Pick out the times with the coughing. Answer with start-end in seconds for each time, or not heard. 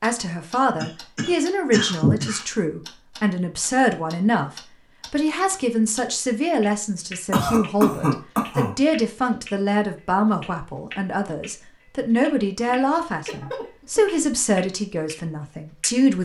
0.8-2.5, 7.3-8.8, 12.7-14.0.